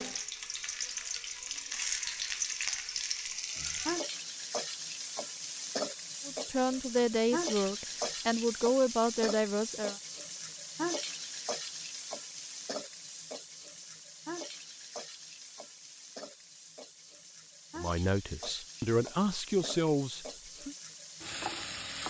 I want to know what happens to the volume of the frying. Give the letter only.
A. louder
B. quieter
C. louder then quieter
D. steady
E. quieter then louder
B.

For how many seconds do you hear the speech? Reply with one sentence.
You can hear the speech for 7 seconds altogether.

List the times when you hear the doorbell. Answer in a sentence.
The doorbell can't be heard in this clip.